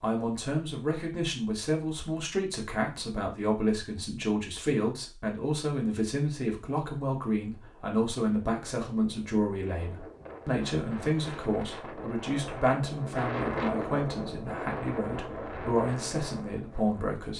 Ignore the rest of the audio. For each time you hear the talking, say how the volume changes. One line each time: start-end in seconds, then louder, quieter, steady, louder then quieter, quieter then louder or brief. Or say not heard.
0.0-17.3 steady.